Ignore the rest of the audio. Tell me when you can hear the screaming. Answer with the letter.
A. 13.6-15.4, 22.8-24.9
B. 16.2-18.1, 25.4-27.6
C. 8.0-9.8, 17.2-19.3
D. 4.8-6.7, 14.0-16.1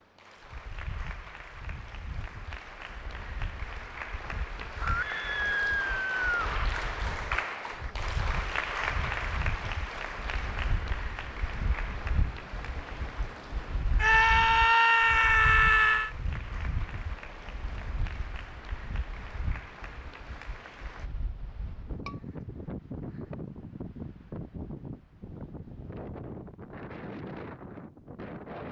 D.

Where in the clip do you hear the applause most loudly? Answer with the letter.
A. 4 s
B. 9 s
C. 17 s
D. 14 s
B.